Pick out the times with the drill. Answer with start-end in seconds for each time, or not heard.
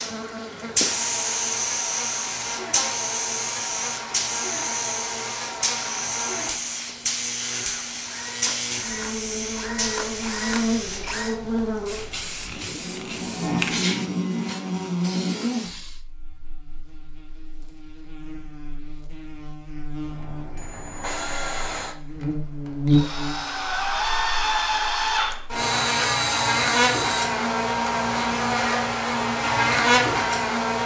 7.4-11.4, 20.1-27.4.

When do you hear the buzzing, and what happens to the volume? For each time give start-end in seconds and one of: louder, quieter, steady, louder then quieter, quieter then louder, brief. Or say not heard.
0.0-30.8 louder.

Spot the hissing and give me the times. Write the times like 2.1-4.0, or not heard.
0.0-16.0.